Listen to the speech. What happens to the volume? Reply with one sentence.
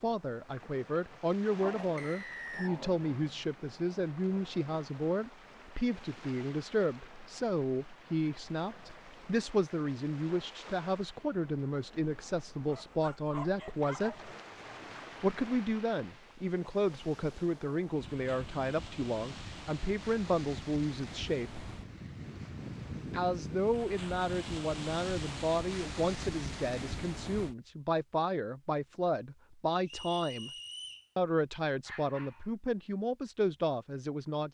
The loudness of the speech stays about the same.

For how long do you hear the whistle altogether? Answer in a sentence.
You can hear the whistle for 2 seconds altogether.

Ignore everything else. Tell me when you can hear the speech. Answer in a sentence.
You can hear the speech from 0.0 to 14.3 s, from 15.2 to 21.6 s, from 23.1 to 30.5 s and from 31.1 to 34.4 s.